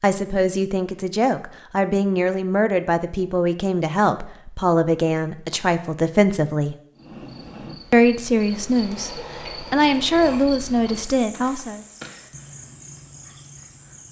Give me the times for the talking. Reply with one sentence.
You can hear the talking from 0.0 to 6.8 s and from 7.9 to 11.8 s.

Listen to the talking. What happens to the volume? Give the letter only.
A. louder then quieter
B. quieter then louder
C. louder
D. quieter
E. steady
E.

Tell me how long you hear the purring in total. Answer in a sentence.
The purring can't be heard in this clip.